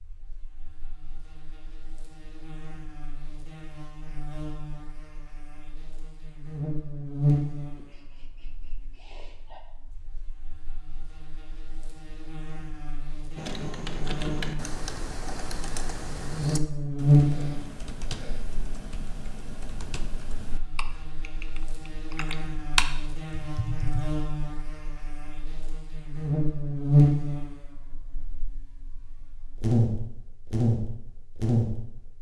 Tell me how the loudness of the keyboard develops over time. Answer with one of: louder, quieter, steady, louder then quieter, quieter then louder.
quieter then louder.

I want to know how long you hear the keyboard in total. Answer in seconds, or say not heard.
11 s.